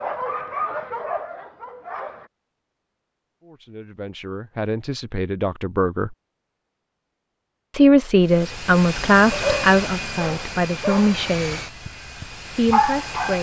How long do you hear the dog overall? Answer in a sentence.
The dog can be heard for 6 seconds in total.